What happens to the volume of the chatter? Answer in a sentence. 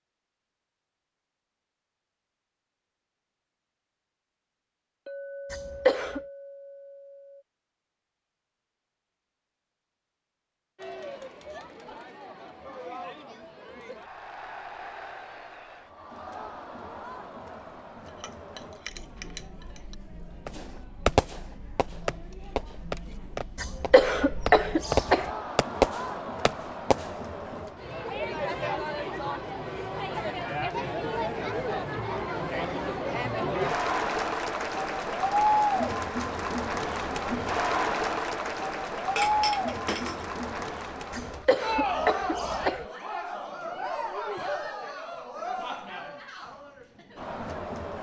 The volume of the chatter goes up, then down.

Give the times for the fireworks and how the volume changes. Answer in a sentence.
The fireworks can be heard from 20.4 to 27.1 s, getting quieter then louder.